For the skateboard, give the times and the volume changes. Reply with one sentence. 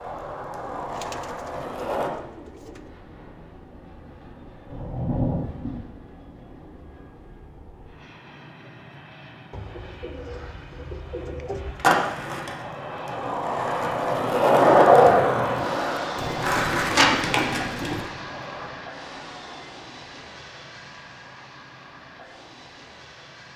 You can hear the skateboard briefly from 0.0 to 2.1 s; and from 11.8 to 18.7 s, getting louder then quieter.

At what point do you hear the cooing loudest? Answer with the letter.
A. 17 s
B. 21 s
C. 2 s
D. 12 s
A.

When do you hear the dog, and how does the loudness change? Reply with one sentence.
The dog can't be heard in this clip.